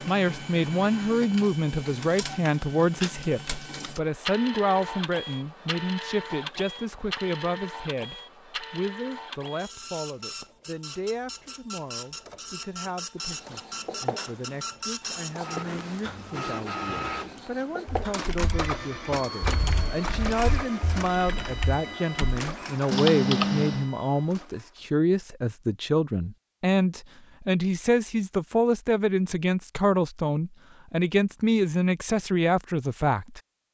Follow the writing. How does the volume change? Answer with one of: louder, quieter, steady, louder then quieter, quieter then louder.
quieter then louder.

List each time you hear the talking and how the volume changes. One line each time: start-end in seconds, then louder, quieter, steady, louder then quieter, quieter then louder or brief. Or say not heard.
0.1-33.7 quieter then louder.